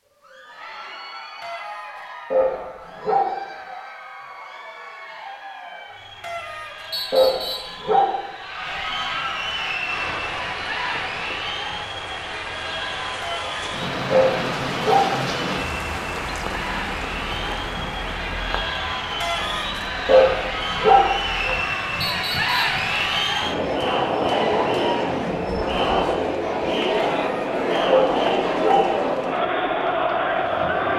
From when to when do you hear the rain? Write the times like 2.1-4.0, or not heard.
9.8-30.9.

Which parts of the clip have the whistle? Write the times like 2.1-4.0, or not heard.
6.9-7.8, 22.0-22.6.